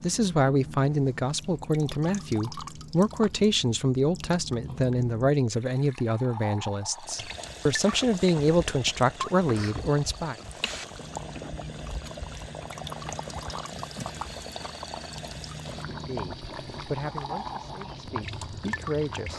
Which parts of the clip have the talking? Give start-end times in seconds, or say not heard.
0.0-10.3, 16.1-19.3.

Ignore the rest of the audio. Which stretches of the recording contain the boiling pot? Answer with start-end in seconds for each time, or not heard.
6.9-19.3.